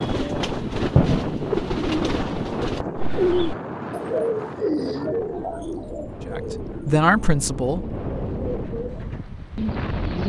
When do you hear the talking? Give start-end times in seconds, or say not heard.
6.2-7.8.